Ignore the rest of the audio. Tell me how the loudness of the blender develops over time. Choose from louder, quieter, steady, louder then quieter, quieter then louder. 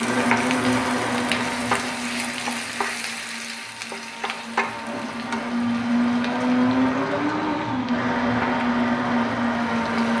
quieter then louder.